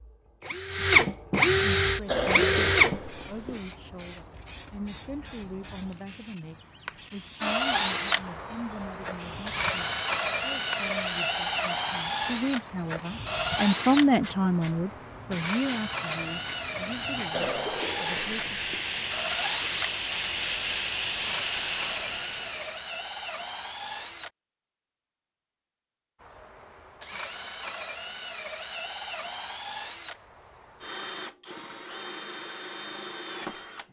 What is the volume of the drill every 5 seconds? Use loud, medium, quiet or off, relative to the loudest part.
loud, medium, medium, medium, quiet, quiet, quiet.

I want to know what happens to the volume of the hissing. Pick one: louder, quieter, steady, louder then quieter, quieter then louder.
louder.